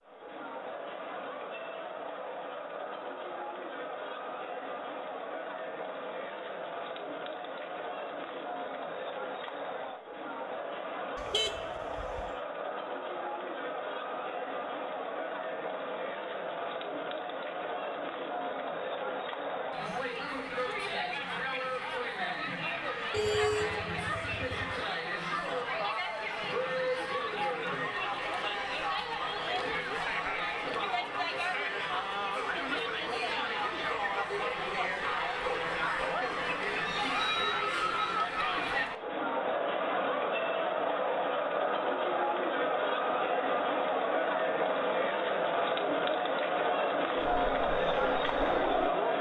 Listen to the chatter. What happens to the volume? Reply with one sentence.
The volume of the chatter goes up.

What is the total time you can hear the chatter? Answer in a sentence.
You can hear the chatter for 49 seconds altogether.